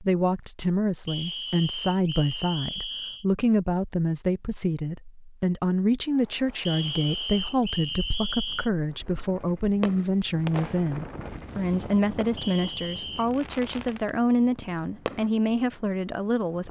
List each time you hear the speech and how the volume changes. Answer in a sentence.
The speech can be heard from 0.0 to 16.6 s, at a steady volume.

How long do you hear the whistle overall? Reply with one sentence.
The whistle can be heard for 5 seconds in total.